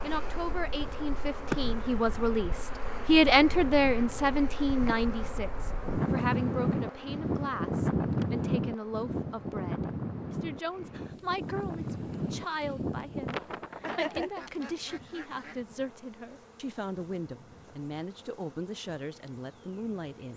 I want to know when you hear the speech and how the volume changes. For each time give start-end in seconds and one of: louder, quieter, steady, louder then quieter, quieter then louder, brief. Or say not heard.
0.0-20.3 quieter.